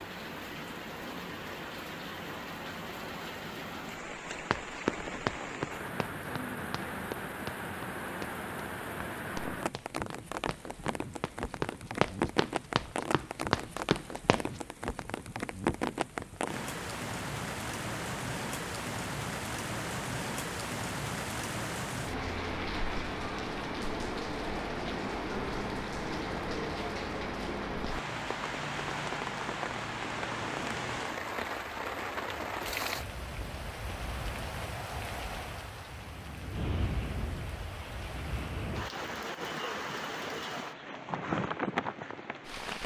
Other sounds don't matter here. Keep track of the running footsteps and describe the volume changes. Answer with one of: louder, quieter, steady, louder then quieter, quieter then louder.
quieter then louder.